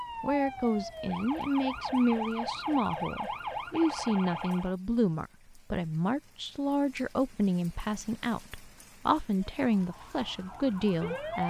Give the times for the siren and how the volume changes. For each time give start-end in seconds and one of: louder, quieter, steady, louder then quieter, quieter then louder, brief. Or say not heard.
0.0-4.8 steady
9.3-11.4 brief.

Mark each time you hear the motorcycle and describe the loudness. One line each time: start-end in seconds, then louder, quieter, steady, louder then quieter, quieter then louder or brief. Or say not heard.
not heard.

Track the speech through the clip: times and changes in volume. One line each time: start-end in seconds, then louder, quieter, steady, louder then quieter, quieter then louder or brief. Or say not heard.
0.2-11.4 steady.